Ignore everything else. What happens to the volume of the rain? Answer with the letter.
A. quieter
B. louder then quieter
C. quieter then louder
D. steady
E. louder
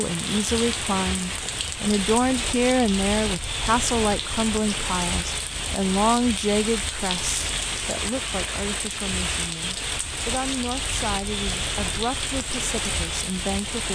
D.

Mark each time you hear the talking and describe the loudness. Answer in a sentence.
You can hear the talking from 0.0 to 13.8 s, getting quieter.